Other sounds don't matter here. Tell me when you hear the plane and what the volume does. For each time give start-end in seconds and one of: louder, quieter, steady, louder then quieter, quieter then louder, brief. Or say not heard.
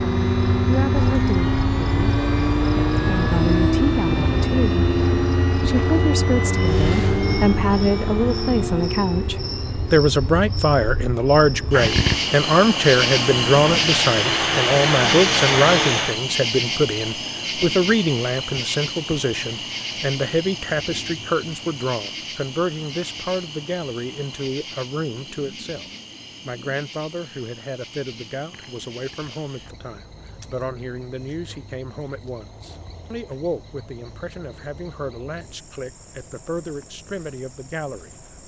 0.0-16.2 quieter then louder.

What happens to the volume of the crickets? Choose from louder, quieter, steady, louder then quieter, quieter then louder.
louder then quieter.